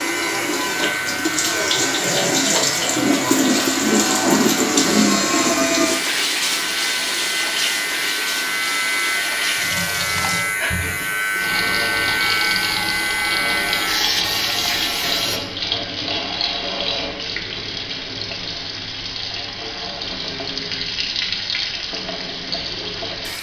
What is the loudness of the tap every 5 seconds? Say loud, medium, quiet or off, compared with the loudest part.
loud, loud, medium, medium, medium.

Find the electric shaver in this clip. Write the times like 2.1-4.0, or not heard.
0.0-15.4.